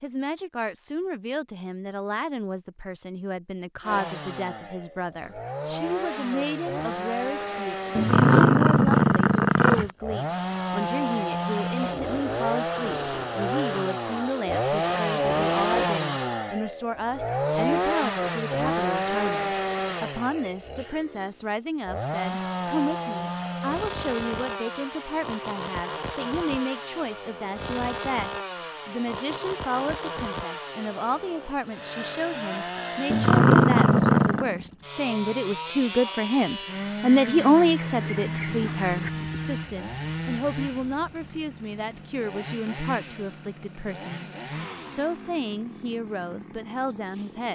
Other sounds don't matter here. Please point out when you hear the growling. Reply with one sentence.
The growling can be heard from 8.0 to 9.9 s and from 33.1 to 34.5 s.